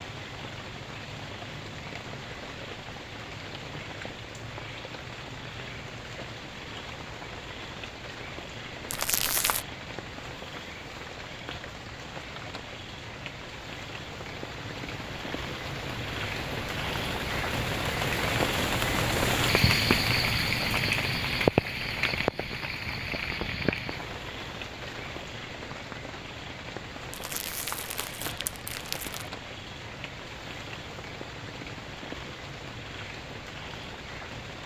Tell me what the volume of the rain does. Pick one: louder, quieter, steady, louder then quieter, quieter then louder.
louder then quieter.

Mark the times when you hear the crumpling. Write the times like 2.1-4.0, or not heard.
8.8-9.7, 27.1-29.2.